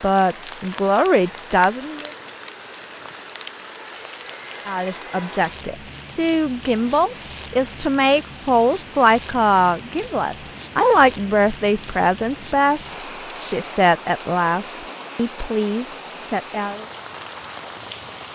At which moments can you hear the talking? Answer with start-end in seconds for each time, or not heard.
0.0-2.1, 4.7-16.9.